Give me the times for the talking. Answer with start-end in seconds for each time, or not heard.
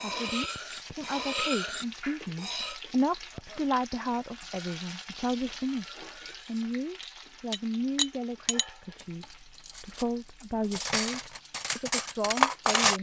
0.0-12.9.